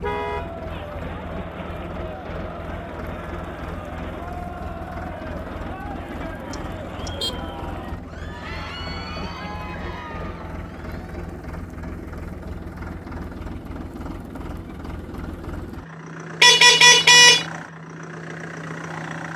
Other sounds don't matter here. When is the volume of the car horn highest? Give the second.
17 s.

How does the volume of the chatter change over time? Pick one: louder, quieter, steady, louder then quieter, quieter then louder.
steady.